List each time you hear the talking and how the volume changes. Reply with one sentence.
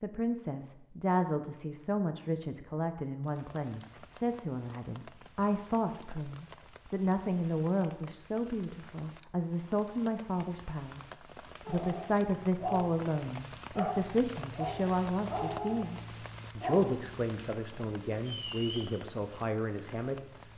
You can hear the talking from 0.0 to 20.2 s, at a steady volume.